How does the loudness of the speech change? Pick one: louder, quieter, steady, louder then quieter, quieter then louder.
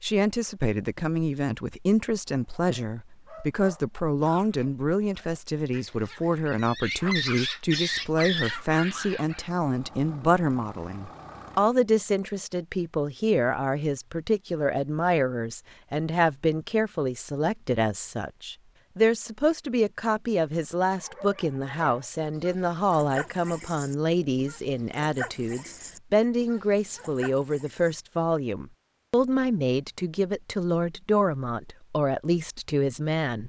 steady.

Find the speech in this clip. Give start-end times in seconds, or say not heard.
0.0-33.4.